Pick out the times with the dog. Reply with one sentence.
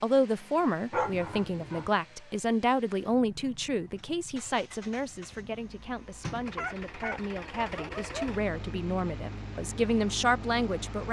You can hear the dog from 0.9 to 1.9 s and from 6.5 to 8.3 s.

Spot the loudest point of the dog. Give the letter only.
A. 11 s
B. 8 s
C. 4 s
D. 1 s
D.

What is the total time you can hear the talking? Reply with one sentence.
The talking can be heard for 11 seconds in total.